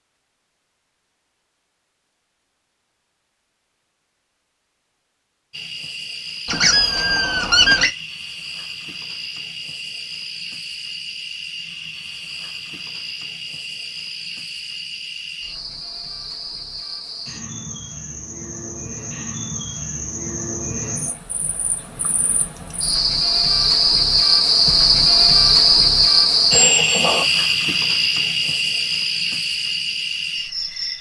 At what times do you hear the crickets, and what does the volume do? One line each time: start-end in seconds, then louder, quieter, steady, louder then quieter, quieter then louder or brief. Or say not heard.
5.5-30.9 louder.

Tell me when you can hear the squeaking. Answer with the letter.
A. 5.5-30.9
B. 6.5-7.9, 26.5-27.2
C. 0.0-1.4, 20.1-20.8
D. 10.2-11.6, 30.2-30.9
B.